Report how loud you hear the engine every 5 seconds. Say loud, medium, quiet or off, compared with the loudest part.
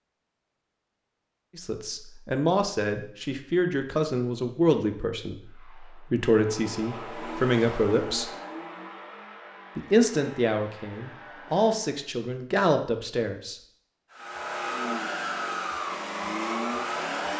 off, medium, medium, loud.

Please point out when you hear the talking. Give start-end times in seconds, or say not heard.
1.6-8.3, 9.8-13.6.